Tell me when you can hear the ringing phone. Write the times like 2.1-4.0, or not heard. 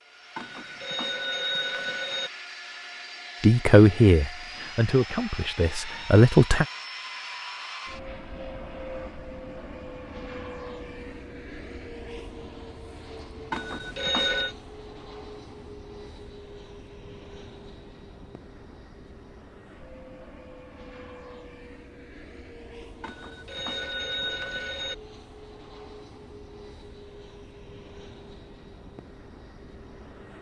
0.3-2.3, 13.5-14.6, 23.0-24.9.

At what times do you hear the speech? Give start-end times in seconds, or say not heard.
3.4-6.7.